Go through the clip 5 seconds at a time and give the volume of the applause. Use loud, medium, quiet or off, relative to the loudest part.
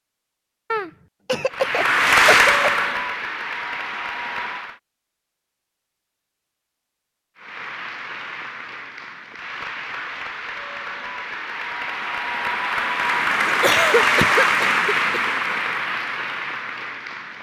loud, quiet, loud, medium.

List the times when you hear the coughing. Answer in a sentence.
You can hear the coughing from 0.7 to 2.7 s and from 13.4 to 15.2 s.